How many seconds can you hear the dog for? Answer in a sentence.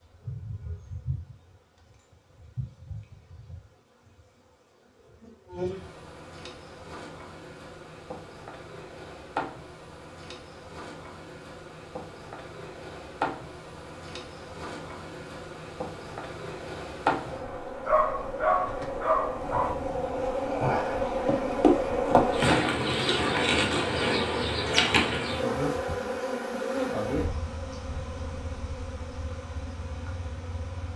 The dog can be heard for 2 seconds in total.